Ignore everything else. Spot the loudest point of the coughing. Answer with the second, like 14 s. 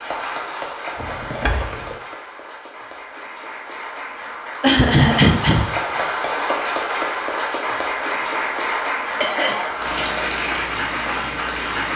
5 s.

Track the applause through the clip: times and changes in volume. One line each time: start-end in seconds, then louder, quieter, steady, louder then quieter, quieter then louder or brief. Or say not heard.
0.0-11.9 louder.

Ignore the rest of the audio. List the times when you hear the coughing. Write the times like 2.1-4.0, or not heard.
0.9-1.9, 4.6-5.7, 9.2-10.2.